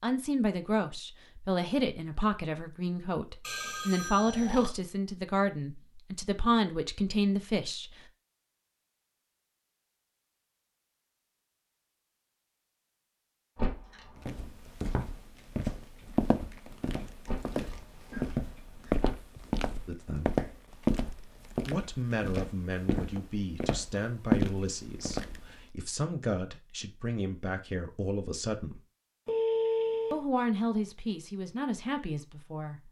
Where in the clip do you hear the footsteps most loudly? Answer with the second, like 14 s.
24 s.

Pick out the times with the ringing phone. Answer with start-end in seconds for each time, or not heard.
3.4-4.7, 29.2-30.2.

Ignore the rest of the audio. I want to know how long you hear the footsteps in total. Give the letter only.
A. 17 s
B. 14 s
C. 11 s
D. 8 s
C.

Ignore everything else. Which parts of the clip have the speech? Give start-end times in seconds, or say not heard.
0.0-8.0, 19.9-20.3, 21.6-28.8, 30.1-32.8.